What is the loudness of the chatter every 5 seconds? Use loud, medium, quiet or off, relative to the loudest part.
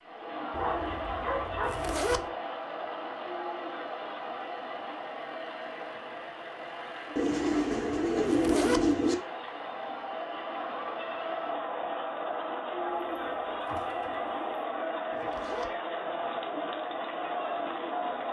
loud, medium, loud, loud.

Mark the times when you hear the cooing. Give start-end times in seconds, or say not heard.
0.5-2.4, 7.2-9.2, 13.1-14.7.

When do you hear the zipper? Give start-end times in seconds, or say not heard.
1.6-2.2, 8.2-8.8, 15.1-15.7.